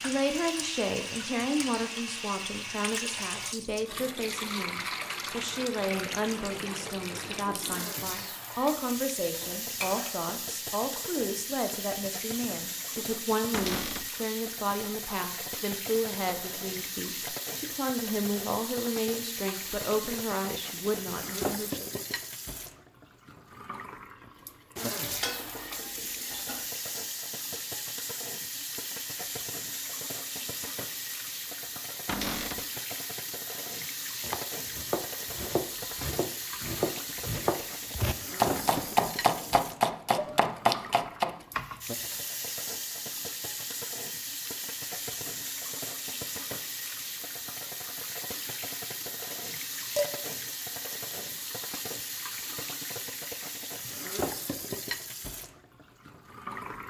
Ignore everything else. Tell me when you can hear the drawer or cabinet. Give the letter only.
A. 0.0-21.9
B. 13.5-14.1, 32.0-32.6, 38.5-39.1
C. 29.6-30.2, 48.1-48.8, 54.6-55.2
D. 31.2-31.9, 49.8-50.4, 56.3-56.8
B.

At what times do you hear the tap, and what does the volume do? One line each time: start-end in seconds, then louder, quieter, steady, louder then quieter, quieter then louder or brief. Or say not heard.
0.0-56.8 steady.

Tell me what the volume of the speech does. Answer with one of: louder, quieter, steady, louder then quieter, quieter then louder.
steady.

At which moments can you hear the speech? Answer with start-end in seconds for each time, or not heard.
0.0-21.9.